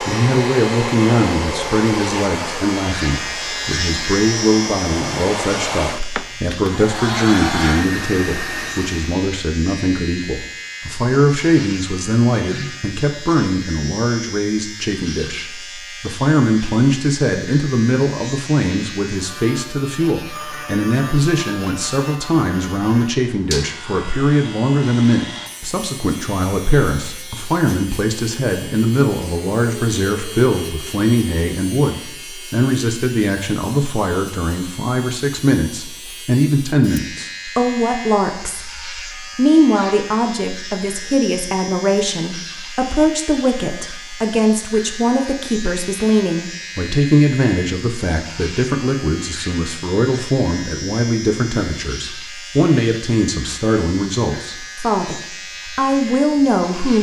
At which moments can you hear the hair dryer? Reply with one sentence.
You can hear the hair dryer from 0.0 to 9.2 s.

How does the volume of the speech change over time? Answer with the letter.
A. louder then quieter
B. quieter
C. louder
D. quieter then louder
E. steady
E.